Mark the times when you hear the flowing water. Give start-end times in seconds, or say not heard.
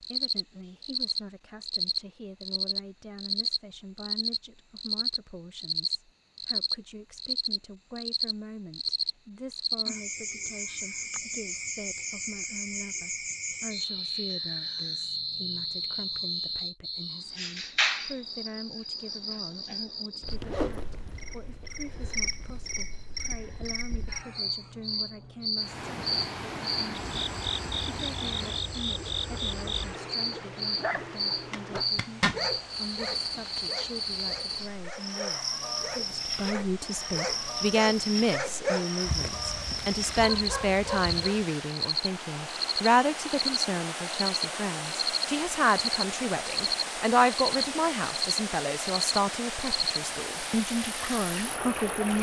25.6-52.1.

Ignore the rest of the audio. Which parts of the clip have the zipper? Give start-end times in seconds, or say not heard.
31.5-32.4.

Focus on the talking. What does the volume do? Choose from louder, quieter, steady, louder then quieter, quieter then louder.
louder.